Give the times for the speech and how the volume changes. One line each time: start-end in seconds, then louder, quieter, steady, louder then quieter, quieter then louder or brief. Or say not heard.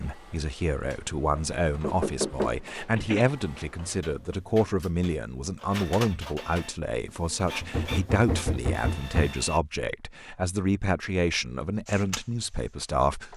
0.0-13.3 steady.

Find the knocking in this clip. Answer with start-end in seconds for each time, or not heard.
1.8-3.3, 7.6-9.3.